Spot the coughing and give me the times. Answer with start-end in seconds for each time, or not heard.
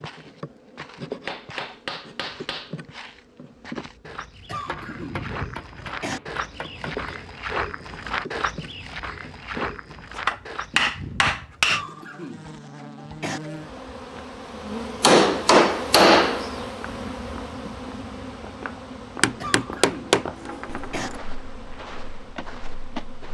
4.5-6.2, 11.7-13.4, 19.4-21.1.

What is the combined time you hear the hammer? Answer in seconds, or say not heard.
9 s.